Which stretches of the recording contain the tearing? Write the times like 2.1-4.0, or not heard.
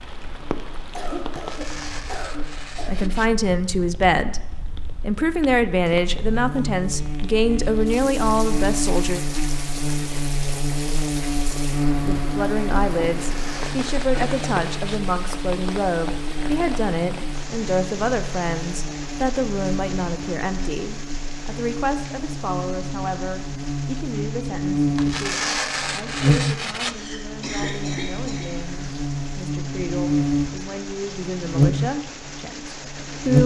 1.3-3.3, 13.1-15.0, 24.9-26.9.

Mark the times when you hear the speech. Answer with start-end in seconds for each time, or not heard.
2.9-9.2, 12.1-33.4.